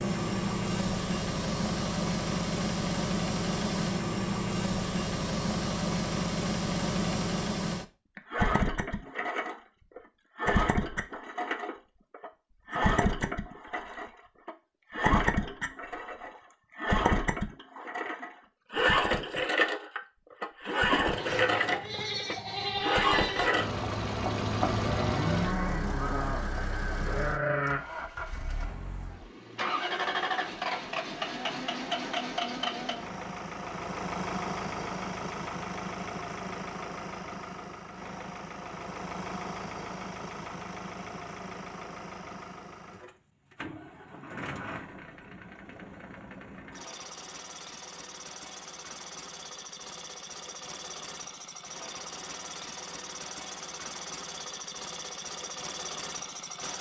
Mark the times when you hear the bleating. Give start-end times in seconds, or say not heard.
21.1-27.8.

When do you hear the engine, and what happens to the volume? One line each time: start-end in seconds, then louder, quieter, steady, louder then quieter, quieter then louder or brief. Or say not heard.
0.0-56.7 quieter.